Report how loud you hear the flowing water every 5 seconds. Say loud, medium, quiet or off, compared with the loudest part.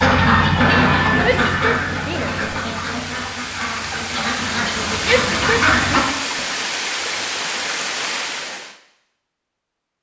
medium, loud.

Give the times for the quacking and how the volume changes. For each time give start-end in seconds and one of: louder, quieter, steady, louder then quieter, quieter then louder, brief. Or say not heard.
0.0-6.4 quieter then louder.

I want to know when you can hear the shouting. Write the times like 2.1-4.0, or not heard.
1.2-2.4, 5.0-6.0.